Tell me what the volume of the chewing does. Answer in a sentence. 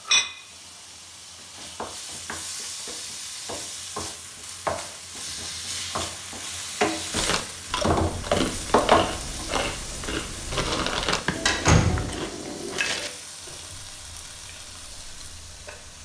The volume of the chewing goes down.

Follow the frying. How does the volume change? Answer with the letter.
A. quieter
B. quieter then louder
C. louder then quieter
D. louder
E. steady
C.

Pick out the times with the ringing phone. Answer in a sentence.
The ringing phone can be heard from 11.4 to 12.1 s.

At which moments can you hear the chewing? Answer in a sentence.
You can hear the chewing from 7.1 to 16.0 s.